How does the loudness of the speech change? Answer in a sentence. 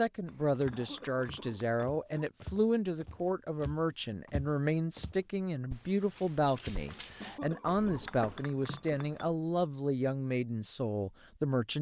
The loudness of the speech stays about the same.